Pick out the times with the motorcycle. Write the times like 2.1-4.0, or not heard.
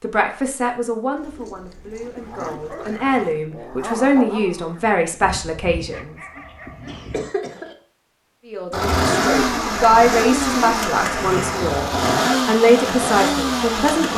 8.7-14.1.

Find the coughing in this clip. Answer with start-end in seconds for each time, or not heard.
6.3-7.8.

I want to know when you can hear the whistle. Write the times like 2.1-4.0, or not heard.
not heard.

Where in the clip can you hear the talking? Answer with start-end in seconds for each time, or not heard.
0.0-6.2, 8.4-11.8, 12.4-14.1.